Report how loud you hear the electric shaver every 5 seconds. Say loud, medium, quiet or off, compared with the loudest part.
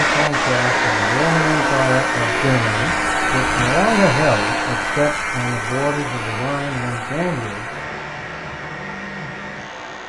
loud, medium.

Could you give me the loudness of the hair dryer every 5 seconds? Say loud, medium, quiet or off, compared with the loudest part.
loud, medium.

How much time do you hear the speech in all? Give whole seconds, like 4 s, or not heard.
8 s.